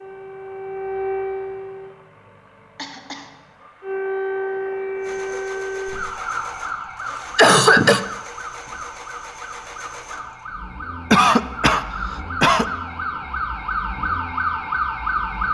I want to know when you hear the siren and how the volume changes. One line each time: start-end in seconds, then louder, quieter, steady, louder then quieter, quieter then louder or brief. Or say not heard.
0.0-1.9 brief
3.8-15.5 quieter then louder.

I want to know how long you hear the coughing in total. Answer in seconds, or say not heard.
3 s.